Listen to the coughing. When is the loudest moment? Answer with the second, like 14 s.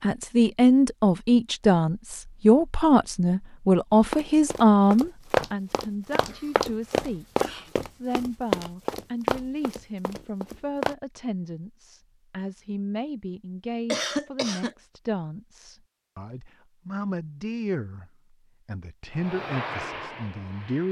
14 s.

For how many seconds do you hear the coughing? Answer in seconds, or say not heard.
2 s.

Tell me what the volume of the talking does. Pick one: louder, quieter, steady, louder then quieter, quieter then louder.
quieter.